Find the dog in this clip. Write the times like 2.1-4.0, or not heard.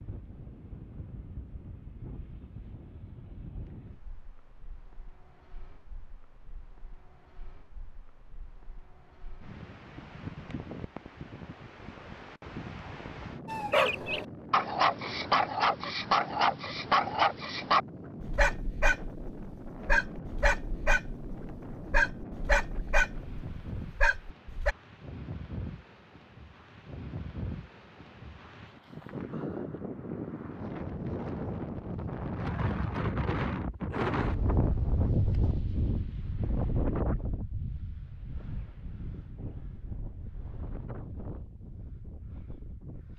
13.4-24.8.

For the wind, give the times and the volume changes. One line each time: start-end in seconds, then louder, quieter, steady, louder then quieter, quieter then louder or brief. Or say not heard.
0.0-43.1 louder.